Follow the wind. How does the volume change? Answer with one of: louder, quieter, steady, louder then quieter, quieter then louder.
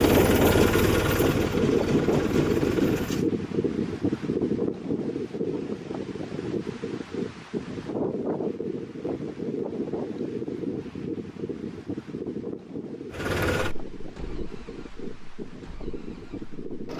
quieter.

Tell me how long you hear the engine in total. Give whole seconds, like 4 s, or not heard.
7 s.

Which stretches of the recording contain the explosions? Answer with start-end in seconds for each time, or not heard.
not heard.